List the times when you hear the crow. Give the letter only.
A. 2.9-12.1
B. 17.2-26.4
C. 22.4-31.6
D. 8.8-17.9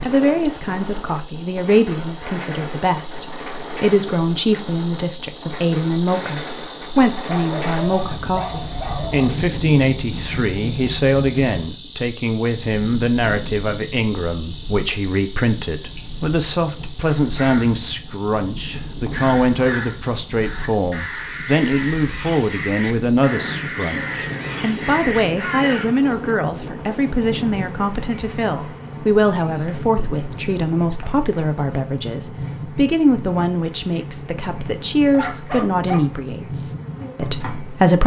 B.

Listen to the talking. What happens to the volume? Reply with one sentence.
The loudness of the talking stays about the same.